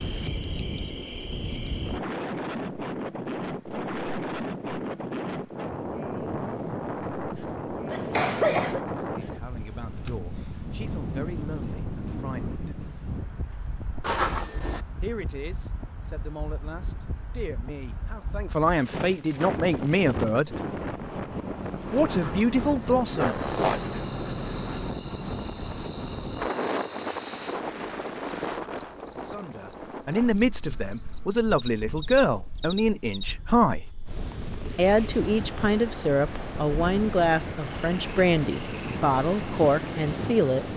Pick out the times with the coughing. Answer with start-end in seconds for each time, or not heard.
7.9-8.8.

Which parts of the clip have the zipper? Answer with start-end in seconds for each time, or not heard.
14.0-14.8, 22.1-23.8.